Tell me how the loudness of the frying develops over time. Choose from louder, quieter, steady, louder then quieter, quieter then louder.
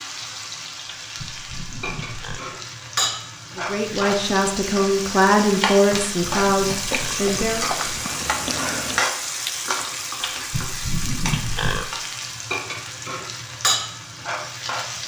steady.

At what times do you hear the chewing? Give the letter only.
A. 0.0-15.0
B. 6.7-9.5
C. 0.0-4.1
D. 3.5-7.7
B.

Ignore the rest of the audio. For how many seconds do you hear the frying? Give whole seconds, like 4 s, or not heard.
15 s.